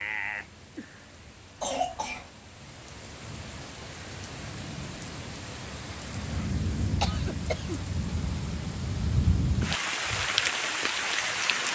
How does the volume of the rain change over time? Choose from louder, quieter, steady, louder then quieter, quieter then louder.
louder.